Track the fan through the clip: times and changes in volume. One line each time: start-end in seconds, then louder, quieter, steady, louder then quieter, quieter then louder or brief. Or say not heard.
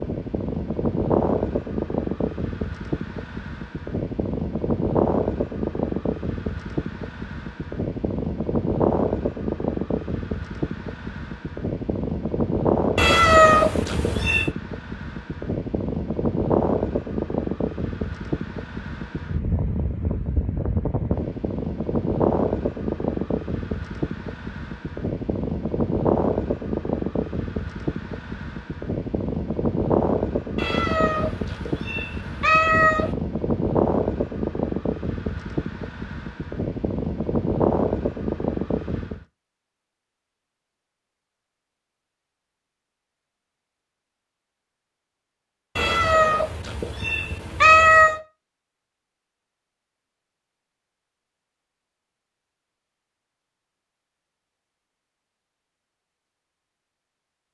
0.0-39.2 steady.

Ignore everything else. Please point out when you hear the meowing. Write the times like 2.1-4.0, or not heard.
12.9-14.5, 30.6-33.1, 45.8-48.2.